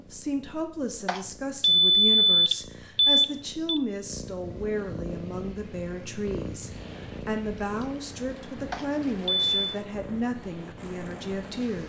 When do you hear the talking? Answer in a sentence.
You can hear the talking from 0.0 to 11.8 s.